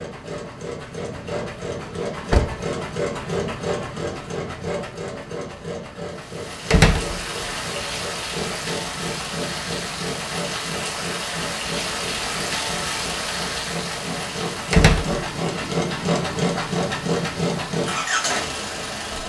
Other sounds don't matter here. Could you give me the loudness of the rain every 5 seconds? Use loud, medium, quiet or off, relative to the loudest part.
off, loud, loud, medium.